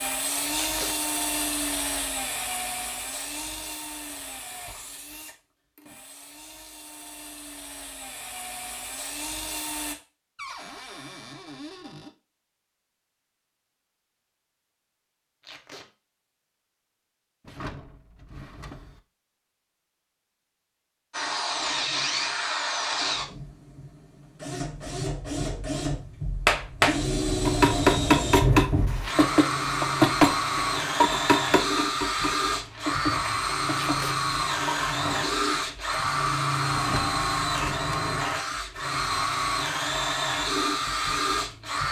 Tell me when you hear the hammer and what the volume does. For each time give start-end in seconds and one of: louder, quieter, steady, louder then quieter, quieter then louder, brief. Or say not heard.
26.4-35.4 quieter.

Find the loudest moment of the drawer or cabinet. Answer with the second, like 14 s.
37 s.